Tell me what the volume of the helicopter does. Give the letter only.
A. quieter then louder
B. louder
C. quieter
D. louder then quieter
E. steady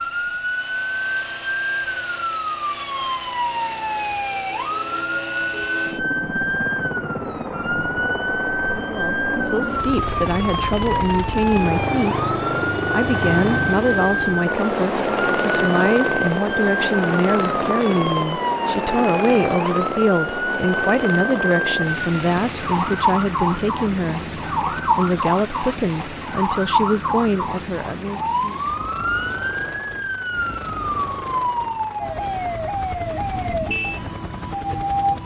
D.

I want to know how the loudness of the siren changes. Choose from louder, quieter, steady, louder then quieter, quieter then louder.
steady.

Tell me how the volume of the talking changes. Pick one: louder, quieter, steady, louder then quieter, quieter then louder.
steady.